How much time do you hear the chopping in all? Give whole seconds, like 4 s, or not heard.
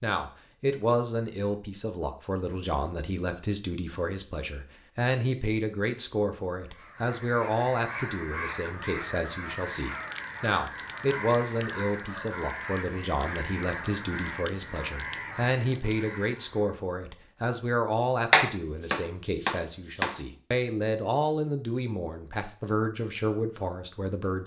2 s.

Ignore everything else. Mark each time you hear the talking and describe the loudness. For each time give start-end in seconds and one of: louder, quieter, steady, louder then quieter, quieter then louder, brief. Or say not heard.
0.0-24.4 steady.